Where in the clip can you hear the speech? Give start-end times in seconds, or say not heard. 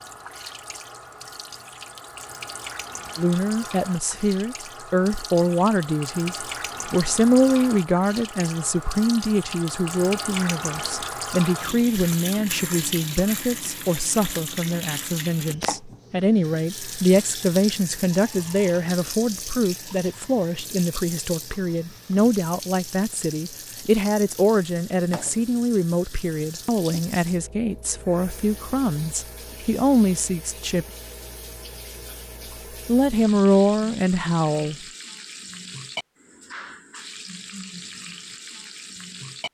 3.1-30.9, 32.9-34.8.